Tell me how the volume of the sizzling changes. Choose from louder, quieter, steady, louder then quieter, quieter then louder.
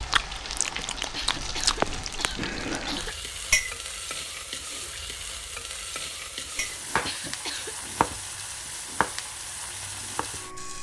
quieter.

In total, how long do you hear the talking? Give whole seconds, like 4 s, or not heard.
not heard.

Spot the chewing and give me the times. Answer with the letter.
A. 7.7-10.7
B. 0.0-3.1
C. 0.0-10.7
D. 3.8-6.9
B.